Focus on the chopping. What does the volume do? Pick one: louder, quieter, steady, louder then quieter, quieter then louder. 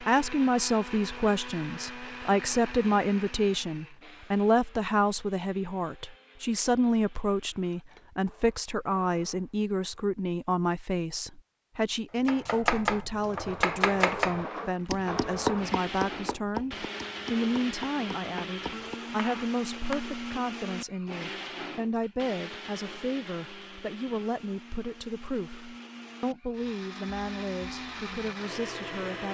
quieter.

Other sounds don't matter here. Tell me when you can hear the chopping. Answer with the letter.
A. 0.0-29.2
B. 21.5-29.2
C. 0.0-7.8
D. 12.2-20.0
D.